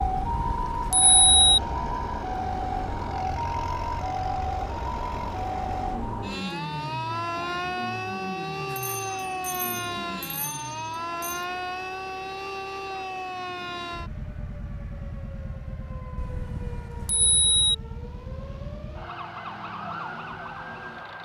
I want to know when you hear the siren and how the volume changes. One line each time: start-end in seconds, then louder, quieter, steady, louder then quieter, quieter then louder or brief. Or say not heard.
0.0-21.2 quieter.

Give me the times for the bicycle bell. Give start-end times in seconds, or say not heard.
0.0-1.6, 8.7-11.4, 16.1-17.8.